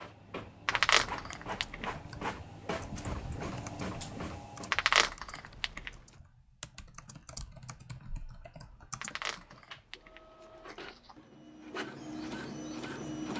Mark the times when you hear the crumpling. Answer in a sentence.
The crumpling can be heard from 0.7 to 1.9 s, from 4.7 to 5.9 s and from 9.0 to 11.2 s.